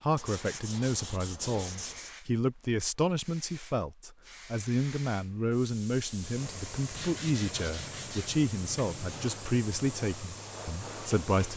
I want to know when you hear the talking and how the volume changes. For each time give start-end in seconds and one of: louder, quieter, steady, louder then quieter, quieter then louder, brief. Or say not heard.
0.0-11.5 steady.